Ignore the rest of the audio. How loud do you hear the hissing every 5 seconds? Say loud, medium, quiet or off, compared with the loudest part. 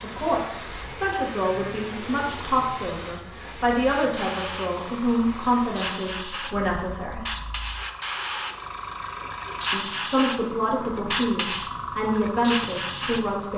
medium, loud, loud.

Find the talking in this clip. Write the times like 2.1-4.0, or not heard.
0.0-7.2, 9.7-13.5.